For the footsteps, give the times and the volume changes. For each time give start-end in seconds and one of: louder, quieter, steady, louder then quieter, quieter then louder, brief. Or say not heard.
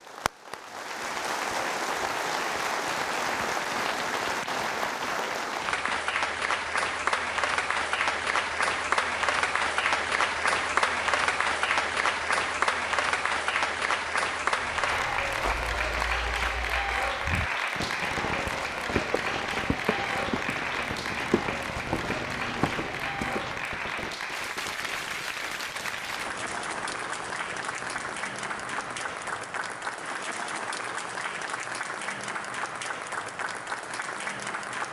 14.5-23.6 quieter then louder.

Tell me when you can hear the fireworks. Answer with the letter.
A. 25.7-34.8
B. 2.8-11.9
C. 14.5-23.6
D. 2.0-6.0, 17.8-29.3
D.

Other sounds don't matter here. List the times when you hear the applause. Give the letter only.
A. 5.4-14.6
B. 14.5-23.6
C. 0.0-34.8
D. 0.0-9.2
C.